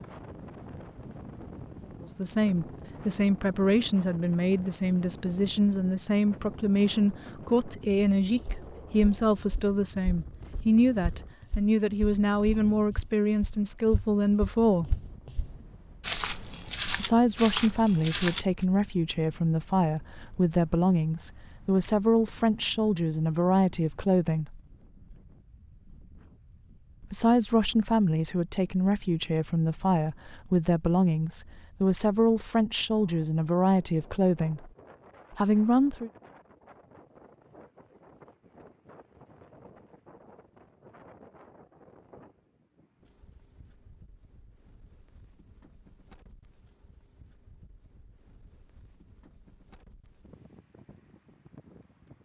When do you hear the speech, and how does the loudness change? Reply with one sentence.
The speech can be heard from 2.0 to 14.9 s, at a steady volume; from 16.9 to 24.6 s, at a steady volume; from 27.1 to 34.7 s, at a steady volume; and briefly from 35.3 to 36.1 s.